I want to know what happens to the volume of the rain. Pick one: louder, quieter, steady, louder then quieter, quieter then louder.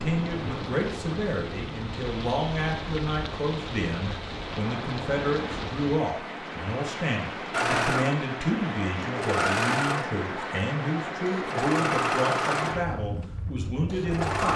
steady.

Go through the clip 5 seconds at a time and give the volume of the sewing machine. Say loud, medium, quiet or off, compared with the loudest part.
off, loud, loud.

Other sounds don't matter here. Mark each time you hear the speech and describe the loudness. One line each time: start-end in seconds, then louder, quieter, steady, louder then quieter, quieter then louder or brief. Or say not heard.
0.0-14.5 steady.